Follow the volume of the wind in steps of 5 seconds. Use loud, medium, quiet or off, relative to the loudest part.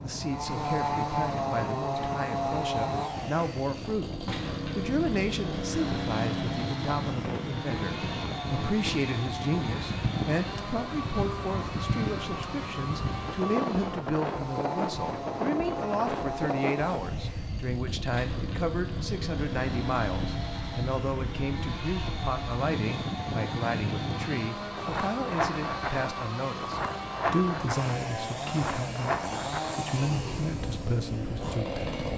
medium, loud, loud, loud, loud, loud, medium.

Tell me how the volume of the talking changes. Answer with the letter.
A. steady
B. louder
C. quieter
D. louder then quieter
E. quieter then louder
A.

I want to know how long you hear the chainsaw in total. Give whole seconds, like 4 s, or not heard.
32 s.